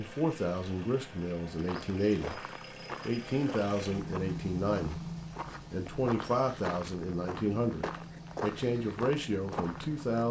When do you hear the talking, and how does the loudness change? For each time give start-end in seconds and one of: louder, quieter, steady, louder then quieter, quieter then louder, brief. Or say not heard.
0.0-2.4 brief
3.0-5.1 brief
5.7-10.2 steady.